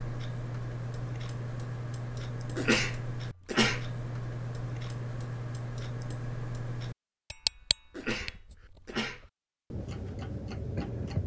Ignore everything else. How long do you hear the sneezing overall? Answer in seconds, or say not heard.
3 s.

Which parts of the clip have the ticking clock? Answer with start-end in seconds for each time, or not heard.
0.0-11.2.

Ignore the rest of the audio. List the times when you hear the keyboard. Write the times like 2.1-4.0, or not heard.
not heard.